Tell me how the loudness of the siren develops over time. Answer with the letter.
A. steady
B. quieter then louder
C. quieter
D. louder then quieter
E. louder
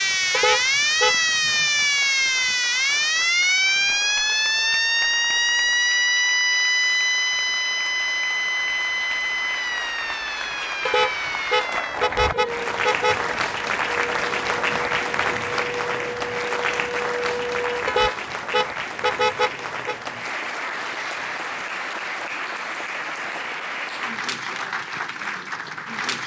C.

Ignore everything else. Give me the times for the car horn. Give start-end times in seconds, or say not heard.
0.3-1.2, 10.8-13.3, 17.9-19.9.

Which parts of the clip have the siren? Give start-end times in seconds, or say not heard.
0.0-18.1.